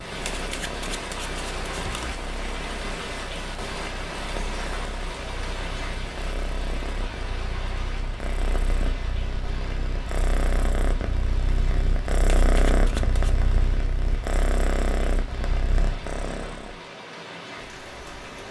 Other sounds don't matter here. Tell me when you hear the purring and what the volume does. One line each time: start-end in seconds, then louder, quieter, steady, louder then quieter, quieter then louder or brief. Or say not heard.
0.0-16.8 louder.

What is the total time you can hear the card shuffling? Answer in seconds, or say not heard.
3 s.